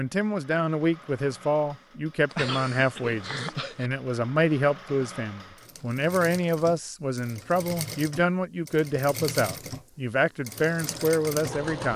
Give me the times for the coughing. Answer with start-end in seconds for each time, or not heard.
2.3-3.9.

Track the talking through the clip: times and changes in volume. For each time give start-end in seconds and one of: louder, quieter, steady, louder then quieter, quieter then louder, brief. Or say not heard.
0.0-11.9 steady.